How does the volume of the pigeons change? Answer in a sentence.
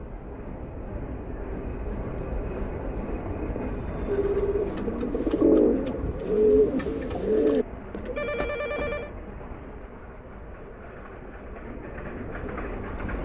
The volume of the pigeons goes up.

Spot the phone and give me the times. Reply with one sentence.
You can hear the phone from 4.0 to 4.6 s and from 8.2 to 9.1 s.